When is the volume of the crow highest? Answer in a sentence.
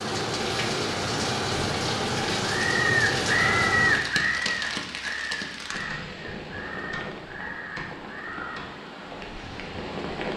The loudest moment of the crow is at 4 seconds.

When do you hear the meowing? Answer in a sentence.
You can't hear the meowing here.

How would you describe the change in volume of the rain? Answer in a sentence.
The volume of the rain goes down.